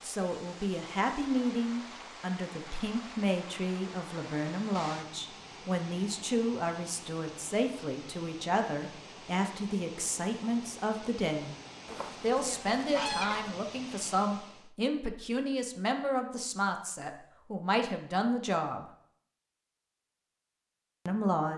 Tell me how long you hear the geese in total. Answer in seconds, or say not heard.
2 s.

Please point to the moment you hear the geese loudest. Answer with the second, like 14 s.
13 s.